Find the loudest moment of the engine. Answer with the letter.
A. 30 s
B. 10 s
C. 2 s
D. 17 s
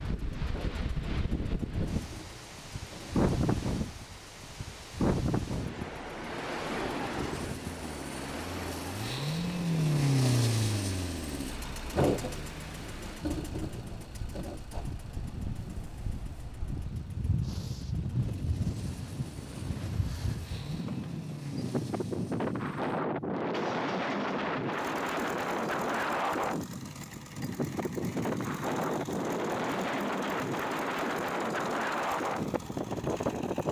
B.